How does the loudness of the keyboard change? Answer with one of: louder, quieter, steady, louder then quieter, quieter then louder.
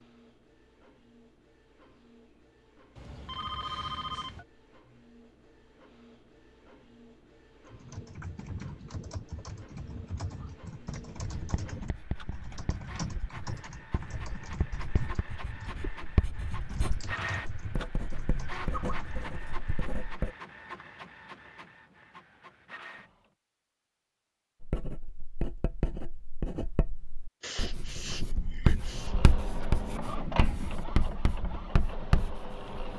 steady.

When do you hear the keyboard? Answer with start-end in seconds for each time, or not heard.
7.7-19.3.